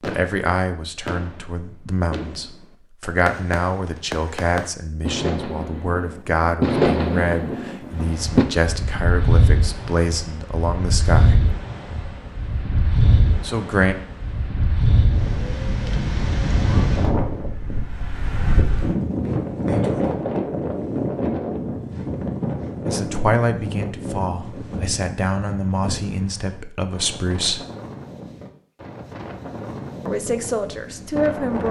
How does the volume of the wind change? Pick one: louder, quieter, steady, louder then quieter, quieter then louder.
quieter.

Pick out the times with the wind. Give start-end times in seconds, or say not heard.
7.9-31.6.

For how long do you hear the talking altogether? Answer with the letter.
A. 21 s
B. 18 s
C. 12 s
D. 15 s
B.